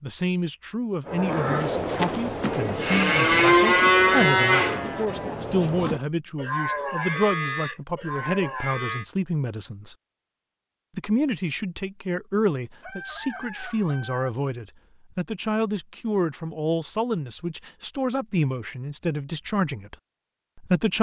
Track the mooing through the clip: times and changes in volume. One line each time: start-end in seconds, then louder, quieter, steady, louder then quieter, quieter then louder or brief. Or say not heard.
1.1-9.1 louder then quieter.